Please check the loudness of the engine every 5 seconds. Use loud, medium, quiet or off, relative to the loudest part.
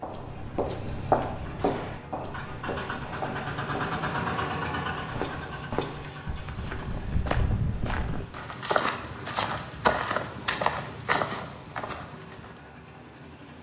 loud, medium, quiet.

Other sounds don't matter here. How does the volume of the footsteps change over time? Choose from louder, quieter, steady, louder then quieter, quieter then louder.
quieter then louder.